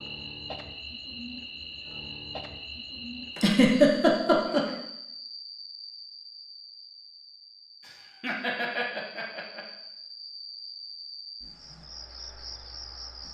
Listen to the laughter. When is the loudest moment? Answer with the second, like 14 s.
4 s.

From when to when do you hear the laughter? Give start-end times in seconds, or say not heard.
3.4-4.7, 7.8-9.6.